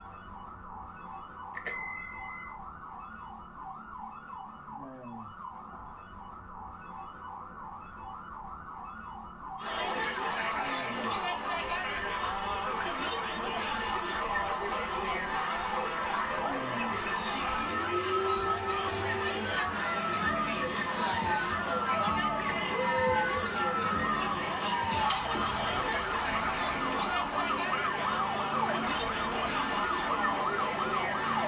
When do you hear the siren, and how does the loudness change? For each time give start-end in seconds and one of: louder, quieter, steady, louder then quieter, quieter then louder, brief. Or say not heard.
0.0-31.4 louder.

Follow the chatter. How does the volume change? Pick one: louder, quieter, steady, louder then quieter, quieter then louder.
steady.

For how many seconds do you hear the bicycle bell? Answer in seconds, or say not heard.
2 s.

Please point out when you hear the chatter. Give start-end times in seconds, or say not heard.
9.6-31.4.